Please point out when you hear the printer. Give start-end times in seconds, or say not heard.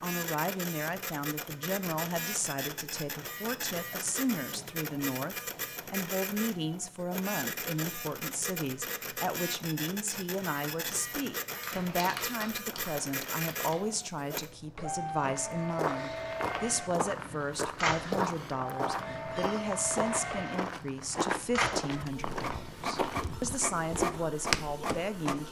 0.0-25.4.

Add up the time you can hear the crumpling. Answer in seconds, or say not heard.
2 s.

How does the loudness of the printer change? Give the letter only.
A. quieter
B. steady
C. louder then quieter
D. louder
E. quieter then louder
B.